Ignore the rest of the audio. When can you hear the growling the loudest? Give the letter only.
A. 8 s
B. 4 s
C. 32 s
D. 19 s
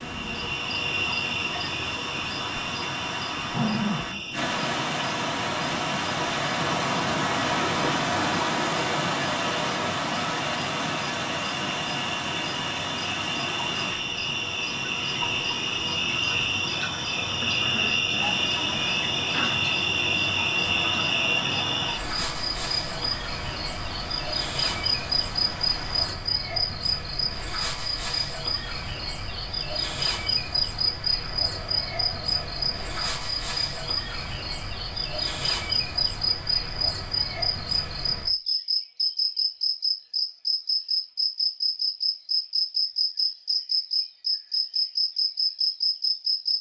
B.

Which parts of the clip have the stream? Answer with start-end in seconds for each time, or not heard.
0.0-26.1.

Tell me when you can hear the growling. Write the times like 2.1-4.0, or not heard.
3.5-4.2, 17.4-19.6, 31.4-33.0.